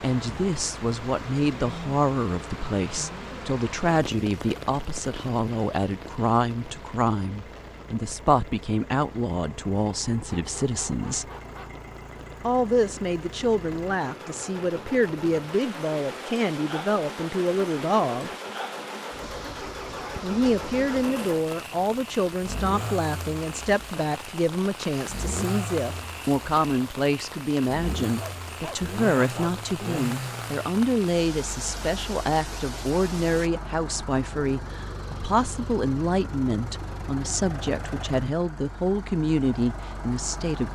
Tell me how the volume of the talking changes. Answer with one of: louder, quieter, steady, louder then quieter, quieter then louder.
steady.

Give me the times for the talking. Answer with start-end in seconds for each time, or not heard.
0.0-11.3, 12.4-18.3, 20.2-40.7.